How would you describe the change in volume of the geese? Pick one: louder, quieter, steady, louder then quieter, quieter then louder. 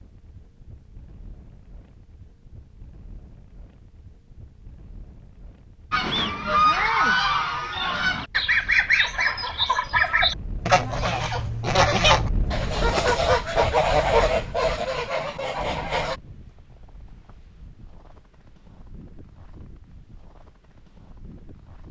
steady.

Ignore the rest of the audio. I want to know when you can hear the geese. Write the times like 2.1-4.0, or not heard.
5.9-16.1.